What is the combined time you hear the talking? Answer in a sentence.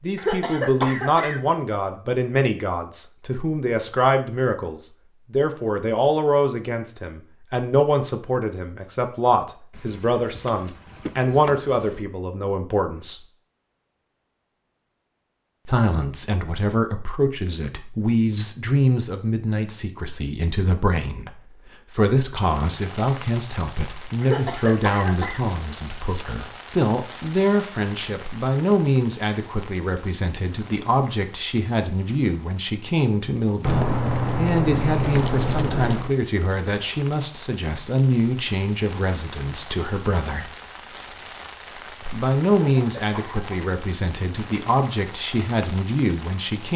You can hear the talking for 43 seconds altogether.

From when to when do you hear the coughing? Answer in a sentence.
You can hear the coughing from 0.1 to 1.4 s, from 24.2 to 25.4 s and from 42.5 to 43.7 s.